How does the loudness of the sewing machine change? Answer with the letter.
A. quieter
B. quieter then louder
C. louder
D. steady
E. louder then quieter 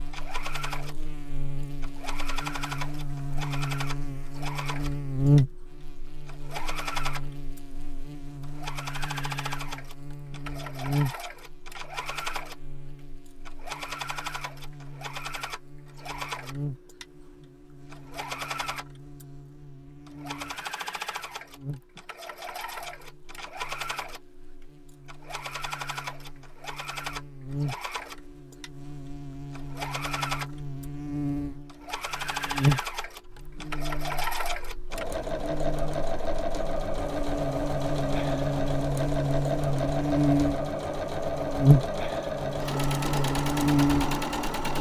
C.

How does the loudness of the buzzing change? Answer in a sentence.
The volume of the buzzing goes down, then up.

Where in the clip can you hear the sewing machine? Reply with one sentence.
You can hear the sewing machine from 0.0 to 44.7 s.